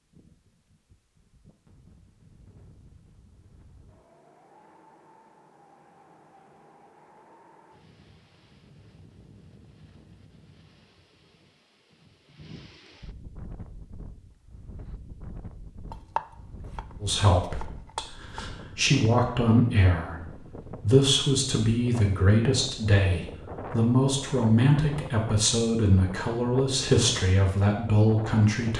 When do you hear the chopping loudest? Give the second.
16 s.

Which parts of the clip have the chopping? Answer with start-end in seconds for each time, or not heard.
15.9-18.5.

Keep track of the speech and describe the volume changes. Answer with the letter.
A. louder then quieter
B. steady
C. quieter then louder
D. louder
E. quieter
B.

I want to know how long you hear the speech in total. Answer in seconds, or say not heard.
12 s.